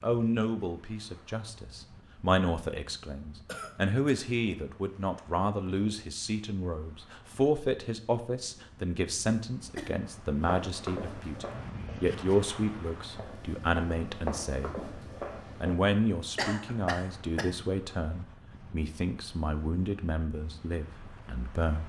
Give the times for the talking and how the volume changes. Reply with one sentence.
You can hear the talking from 0.0 to 14.8 s, at a steady volume; and from 15.6 to 21.8 s, getting quieter.